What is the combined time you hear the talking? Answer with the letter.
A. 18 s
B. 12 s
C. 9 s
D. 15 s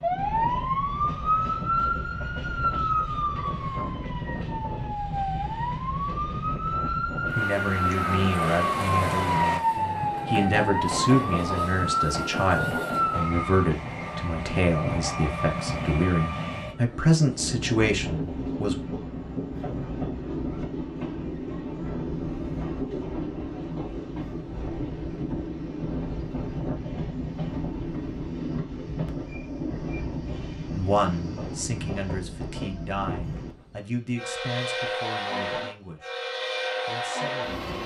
A.